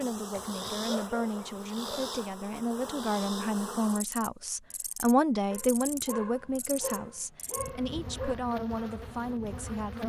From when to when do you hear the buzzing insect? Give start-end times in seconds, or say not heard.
0.0-10.0.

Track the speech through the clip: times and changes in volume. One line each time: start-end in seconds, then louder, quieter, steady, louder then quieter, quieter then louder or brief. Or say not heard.
0.0-10.0 louder then quieter.